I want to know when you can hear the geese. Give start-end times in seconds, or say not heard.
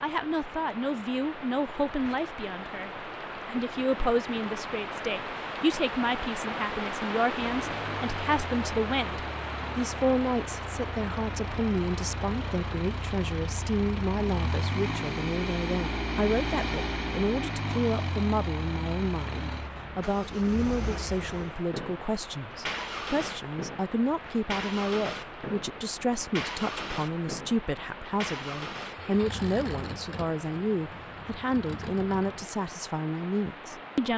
not heard.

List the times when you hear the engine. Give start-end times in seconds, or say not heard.
7.3-32.5.